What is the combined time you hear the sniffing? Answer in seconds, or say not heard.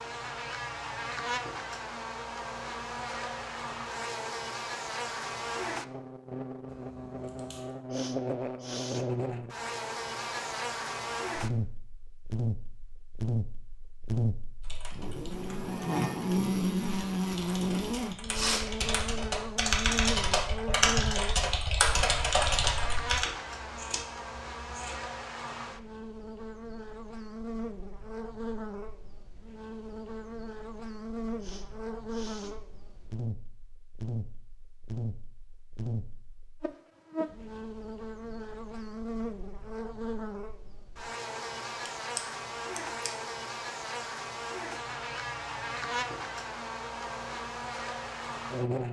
2 s.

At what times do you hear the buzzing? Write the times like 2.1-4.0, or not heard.
0.0-48.8.